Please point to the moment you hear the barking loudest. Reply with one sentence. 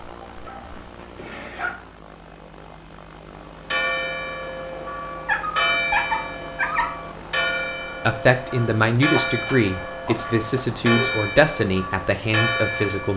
The volume of the barking peaks at 6 seconds.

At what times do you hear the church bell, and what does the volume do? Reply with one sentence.
The church bell can be heard from 3.6 to 13.1 s, at a steady volume.